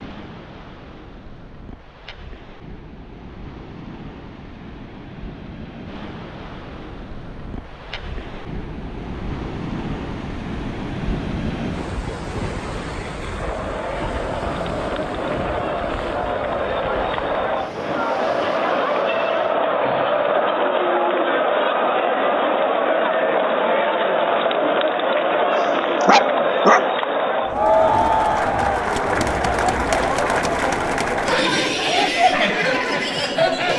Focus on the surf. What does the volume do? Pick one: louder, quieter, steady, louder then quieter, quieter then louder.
louder then quieter.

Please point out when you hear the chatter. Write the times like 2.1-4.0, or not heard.
13.3-33.7.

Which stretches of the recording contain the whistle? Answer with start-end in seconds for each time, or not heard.
not heard.